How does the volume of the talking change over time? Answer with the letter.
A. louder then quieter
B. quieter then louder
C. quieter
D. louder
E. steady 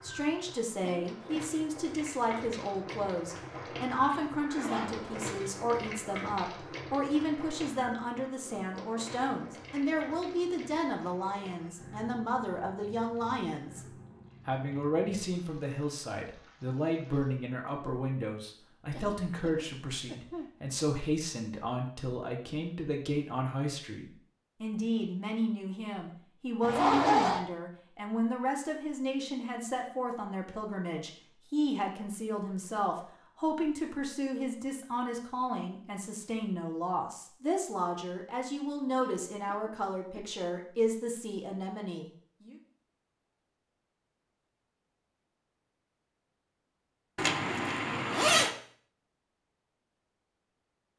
E.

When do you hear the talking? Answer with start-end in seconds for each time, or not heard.
0.0-13.8, 14.4-42.5.